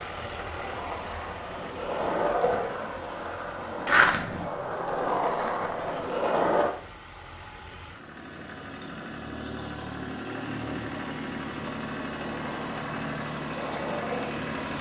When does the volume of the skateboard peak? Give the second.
4 s.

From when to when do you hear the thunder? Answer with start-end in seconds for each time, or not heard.
not heard.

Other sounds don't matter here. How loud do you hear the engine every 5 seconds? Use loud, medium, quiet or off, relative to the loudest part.
medium, medium, loud.